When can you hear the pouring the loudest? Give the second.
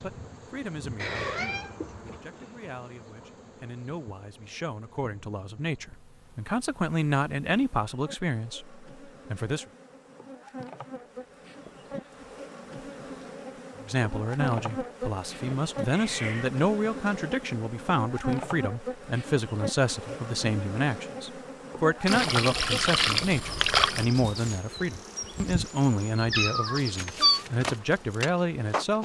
24 s.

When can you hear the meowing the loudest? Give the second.
27 s.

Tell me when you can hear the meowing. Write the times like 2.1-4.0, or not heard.
0.9-2.2, 15.4-16.5, 26.3-27.4.